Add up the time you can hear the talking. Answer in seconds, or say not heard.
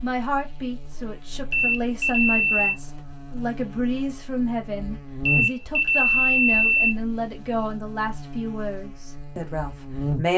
10 s.